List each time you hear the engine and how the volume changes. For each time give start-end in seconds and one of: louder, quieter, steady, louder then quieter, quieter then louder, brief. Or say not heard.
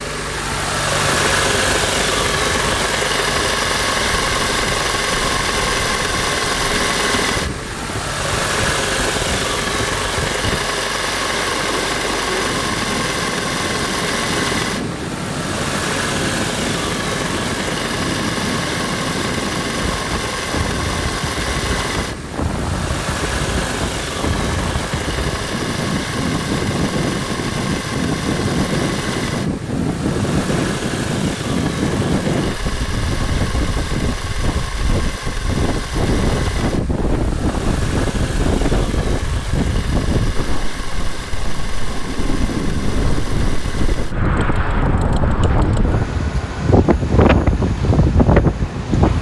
0.0-49.1 quieter.